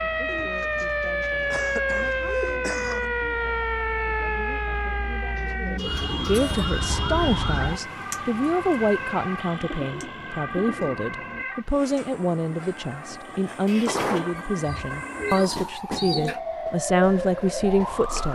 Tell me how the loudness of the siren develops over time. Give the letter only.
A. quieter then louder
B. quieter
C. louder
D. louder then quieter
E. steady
A.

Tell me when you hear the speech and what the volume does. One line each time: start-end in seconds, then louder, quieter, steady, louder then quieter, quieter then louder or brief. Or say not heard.
0.0-18.2 louder.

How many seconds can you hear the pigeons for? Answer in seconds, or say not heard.
8 s.